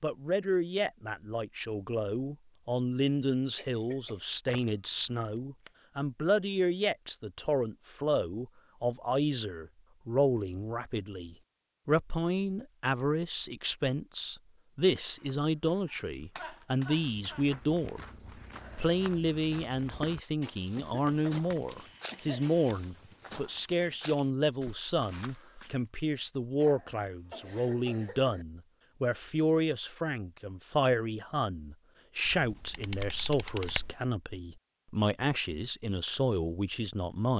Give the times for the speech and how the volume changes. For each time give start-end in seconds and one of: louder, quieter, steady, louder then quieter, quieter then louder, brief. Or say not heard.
0.0-18.1 steady
18.8-37.3 steady.